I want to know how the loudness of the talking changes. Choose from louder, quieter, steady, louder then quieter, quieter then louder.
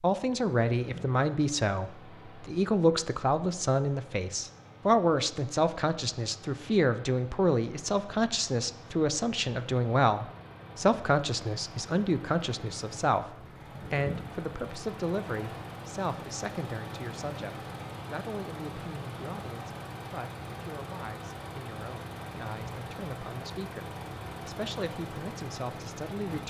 quieter.